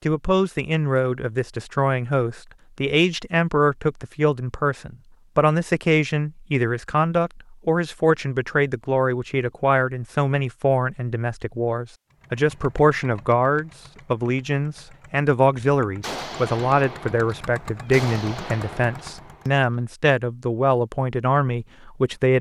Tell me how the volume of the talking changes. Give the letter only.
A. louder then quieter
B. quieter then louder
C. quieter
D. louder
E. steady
E.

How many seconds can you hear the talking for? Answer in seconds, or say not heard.
22 s.